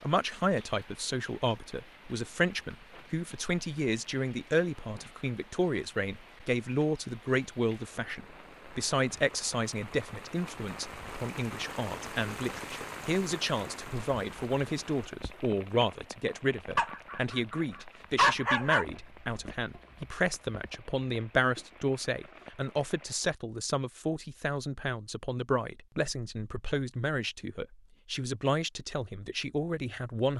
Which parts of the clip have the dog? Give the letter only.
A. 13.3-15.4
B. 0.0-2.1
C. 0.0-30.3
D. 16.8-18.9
D.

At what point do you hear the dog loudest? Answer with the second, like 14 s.
18 s.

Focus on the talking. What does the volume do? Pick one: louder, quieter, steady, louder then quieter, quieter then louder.
steady.